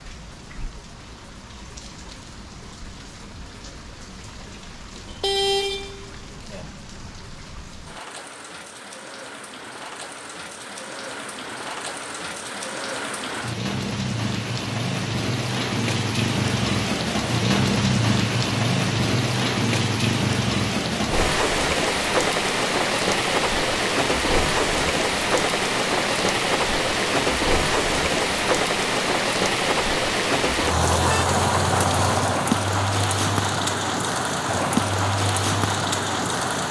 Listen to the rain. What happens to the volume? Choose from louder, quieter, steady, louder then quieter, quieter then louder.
louder.